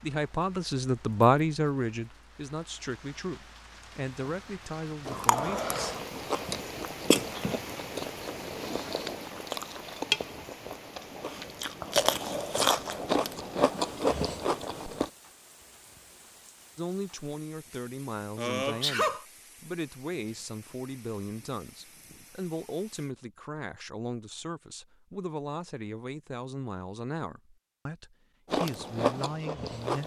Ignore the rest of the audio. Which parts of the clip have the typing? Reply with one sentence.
The typing can't be heard in this clip.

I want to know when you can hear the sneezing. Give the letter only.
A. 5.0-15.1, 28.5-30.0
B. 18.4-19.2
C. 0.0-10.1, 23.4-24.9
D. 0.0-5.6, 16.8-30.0
B.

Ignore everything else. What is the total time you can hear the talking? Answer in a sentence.
You can hear the talking for 19 seconds altogether.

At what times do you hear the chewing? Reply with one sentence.
You can hear the chewing from 5.0 to 15.1 s and from 28.5 to 30.0 s.